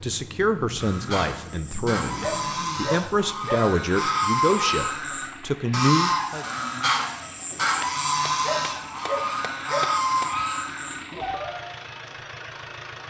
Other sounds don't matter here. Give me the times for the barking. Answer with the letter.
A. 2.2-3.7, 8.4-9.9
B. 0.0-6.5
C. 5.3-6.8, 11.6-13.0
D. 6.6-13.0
A.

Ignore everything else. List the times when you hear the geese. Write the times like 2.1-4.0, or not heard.
0.8-11.7.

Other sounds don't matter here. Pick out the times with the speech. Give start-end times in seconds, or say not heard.
0.0-6.5.